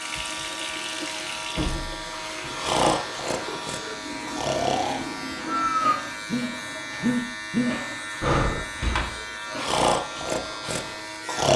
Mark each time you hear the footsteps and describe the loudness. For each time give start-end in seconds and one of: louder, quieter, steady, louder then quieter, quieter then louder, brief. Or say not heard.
not heard.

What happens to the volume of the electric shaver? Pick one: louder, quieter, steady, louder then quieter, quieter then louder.
steady.